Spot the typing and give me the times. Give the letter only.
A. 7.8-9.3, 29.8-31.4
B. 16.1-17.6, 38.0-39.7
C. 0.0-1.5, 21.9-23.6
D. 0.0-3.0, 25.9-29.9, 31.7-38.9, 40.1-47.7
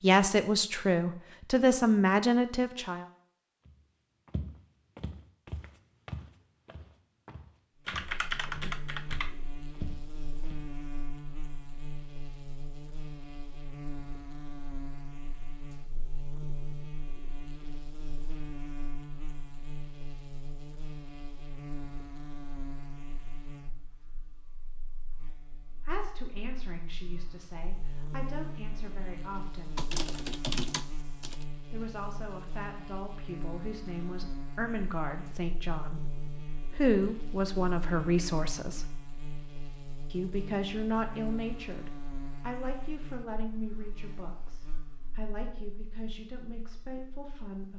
A.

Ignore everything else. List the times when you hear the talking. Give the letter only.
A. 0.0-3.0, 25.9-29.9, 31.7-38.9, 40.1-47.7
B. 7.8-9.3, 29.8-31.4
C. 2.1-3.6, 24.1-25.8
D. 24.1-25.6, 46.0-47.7
A.